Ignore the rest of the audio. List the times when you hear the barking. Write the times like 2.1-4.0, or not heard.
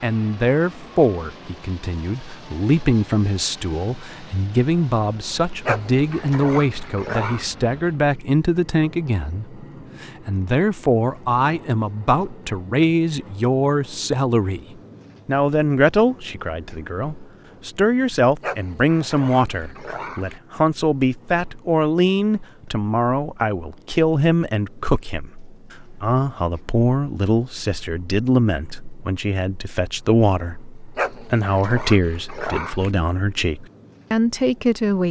5.7-7.5, 18.4-20.4, 30.9-32.9.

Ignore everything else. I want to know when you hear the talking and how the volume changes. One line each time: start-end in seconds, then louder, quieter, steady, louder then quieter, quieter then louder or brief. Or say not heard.
0.0-14.7 steady
15.2-35.0 steady.